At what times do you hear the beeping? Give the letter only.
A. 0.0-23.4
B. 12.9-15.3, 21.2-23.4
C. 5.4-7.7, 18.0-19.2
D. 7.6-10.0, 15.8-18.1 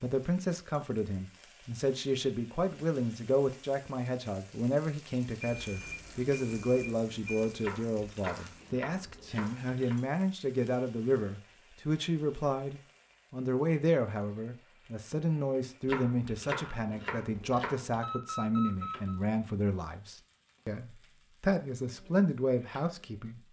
C.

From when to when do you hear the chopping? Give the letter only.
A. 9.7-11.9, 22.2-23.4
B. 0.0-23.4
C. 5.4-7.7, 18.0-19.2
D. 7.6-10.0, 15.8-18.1
D.